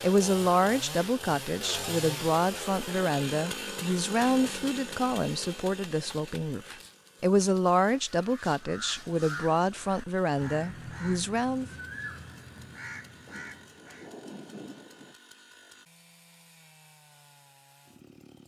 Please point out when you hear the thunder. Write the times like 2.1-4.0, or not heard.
13.2-15.2.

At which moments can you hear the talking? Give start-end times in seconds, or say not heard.
0.0-11.7.